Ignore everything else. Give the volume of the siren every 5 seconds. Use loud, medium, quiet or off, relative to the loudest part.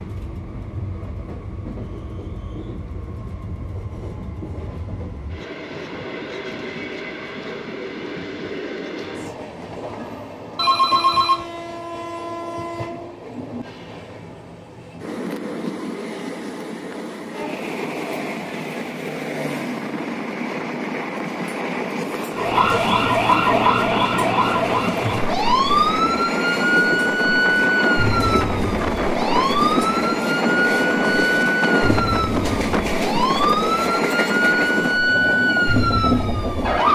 off, off, off, off, loud, loud, loud, loud.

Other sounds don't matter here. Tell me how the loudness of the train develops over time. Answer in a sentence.
The volume of the train goes up.